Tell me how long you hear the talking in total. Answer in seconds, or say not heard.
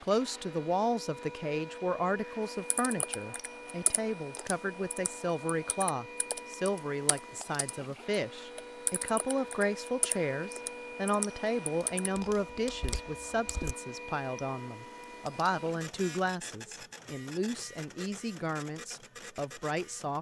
20 s.